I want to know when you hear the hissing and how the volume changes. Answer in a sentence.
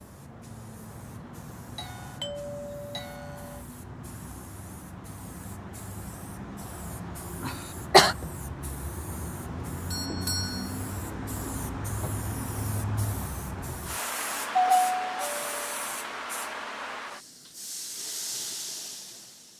The hissing can be heard from 0.0 to 19.5 s, getting louder.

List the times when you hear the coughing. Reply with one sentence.
You can hear the coughing from 7.4 to 8.2 s.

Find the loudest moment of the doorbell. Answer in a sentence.
The loudest moment of the doorbell is at 15 seconds.